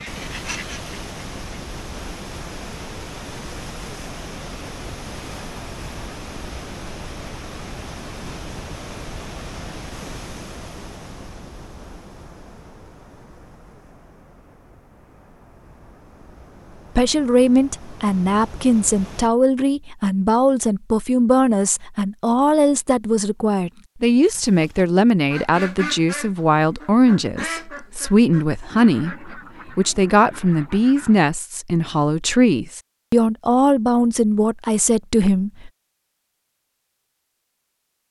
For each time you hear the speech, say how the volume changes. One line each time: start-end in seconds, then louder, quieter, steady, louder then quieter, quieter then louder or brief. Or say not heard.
16.9-35.7 steady.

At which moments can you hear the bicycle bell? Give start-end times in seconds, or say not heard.
not heard.